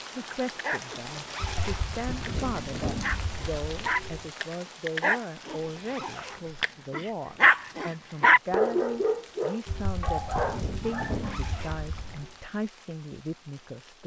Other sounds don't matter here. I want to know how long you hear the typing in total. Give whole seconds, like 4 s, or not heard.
6 s.